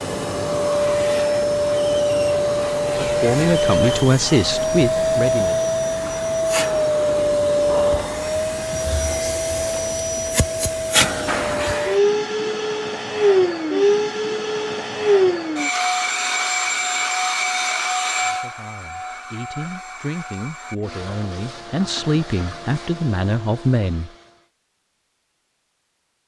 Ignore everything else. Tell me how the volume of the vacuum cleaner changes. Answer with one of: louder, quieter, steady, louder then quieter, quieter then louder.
quieter.